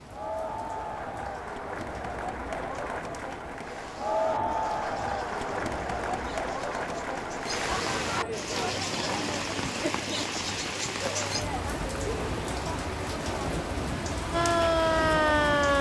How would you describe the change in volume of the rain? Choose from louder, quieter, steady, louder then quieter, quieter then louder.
louder.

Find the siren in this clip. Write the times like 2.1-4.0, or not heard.
14.2-15.7.